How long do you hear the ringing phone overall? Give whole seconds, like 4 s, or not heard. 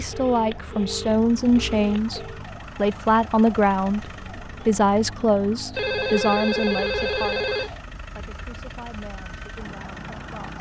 4 s.